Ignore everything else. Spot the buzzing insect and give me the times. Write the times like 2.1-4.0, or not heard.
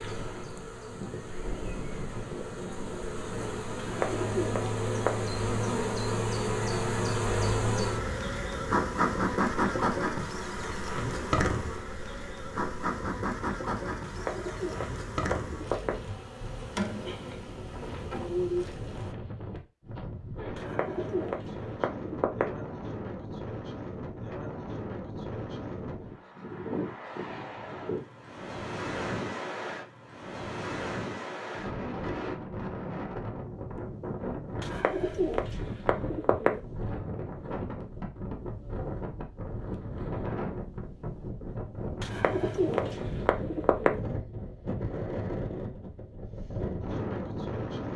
0.0-19.1.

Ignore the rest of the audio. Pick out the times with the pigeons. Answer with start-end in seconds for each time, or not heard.
3.8-5.3, 14.1-16.1, 20.6-22.6, 34.6-36.6, 42.0-44.0.